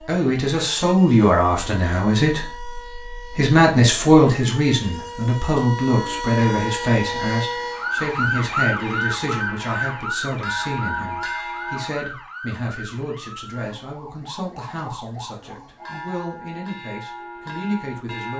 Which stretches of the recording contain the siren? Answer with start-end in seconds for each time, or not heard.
0.0-16.2.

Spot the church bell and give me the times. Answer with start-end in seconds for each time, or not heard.
5.9-11.9, 15.8-18.3.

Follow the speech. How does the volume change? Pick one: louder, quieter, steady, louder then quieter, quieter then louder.
quieter.